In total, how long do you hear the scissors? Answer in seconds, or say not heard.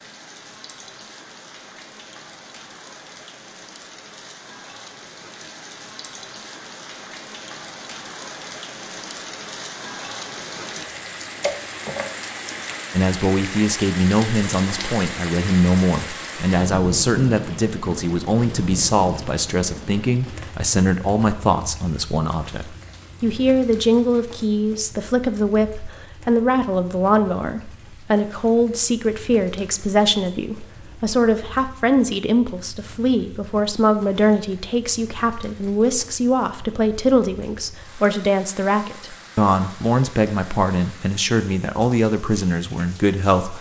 2 s.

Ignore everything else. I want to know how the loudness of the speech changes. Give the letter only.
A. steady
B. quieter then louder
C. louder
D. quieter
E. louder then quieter
A.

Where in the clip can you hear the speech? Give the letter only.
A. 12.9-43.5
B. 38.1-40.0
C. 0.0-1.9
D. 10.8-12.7
A.